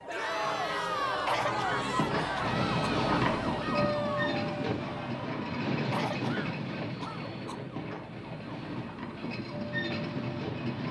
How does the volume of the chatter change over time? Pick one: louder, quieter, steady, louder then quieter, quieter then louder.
quieter.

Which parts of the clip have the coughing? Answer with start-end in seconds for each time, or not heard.
1.2-2.9, 5.8-7.5.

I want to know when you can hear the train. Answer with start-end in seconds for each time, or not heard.
2.4-10.8.